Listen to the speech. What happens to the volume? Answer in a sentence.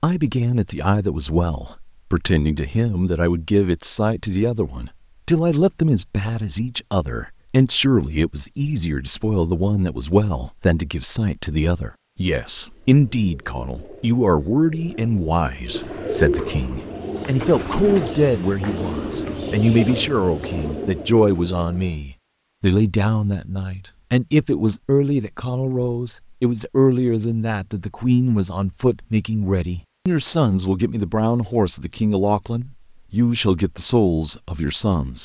The volume of the speech stays about the same.